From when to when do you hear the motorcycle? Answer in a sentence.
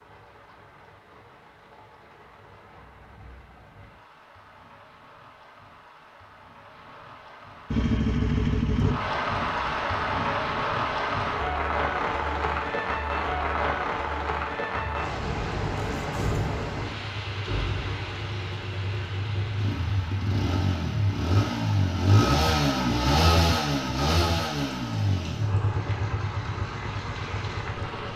You can hear the motorcycle from 7.7 to 11.2 s and from 14.7 to 28.1 s.